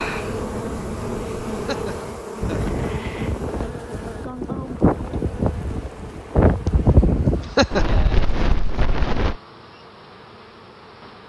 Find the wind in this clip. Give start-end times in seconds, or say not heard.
0.0-9.3.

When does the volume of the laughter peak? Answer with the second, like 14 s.
8 s.